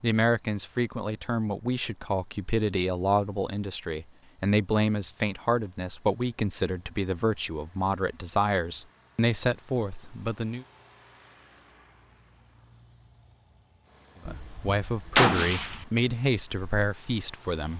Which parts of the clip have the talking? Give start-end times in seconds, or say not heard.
0.0-10.7, 14.2-17.7.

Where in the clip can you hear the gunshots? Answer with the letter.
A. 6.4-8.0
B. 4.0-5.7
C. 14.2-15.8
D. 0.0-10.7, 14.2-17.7
C.